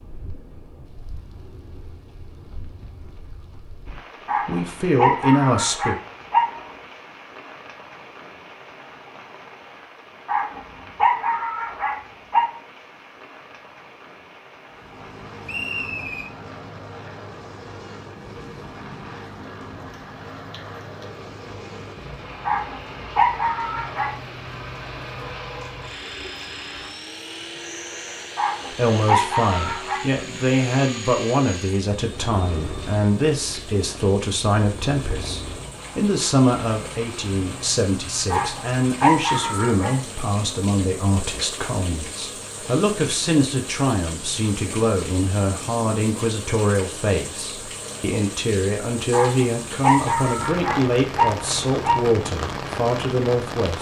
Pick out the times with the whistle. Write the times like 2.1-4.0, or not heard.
15.4-16.3.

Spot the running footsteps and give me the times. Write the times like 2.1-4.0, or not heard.
not heard.